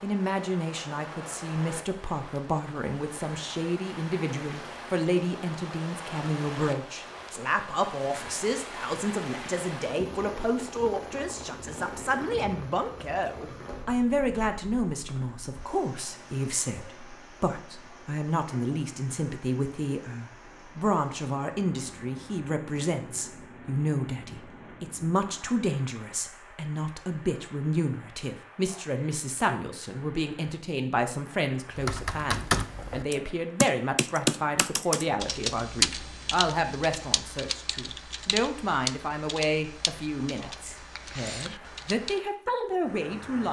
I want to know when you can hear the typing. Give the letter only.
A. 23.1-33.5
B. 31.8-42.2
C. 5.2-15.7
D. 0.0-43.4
B.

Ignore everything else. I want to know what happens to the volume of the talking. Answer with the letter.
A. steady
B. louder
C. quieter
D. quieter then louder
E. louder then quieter
A.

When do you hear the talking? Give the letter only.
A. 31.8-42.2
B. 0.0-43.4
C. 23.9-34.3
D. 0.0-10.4
B.